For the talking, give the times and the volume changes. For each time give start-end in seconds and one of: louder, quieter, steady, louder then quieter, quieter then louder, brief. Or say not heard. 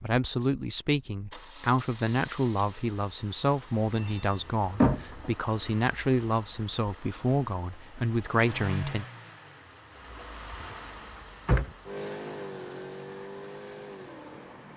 0.0-9.1 steady.